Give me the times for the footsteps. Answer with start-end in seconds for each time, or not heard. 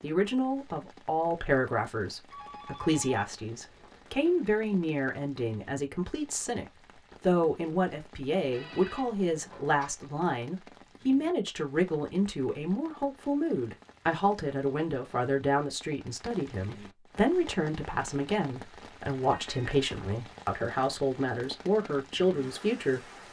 not heard.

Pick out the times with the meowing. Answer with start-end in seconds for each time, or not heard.
not heard.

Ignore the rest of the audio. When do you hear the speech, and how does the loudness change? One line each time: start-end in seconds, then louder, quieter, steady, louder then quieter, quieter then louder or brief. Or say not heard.
0.0-23.1 steady.